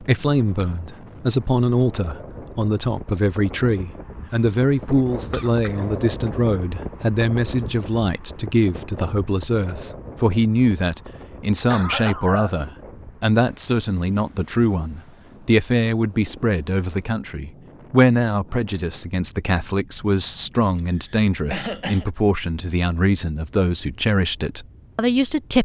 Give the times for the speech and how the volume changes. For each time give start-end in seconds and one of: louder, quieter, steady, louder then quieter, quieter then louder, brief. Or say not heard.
0.0-25.6 steady.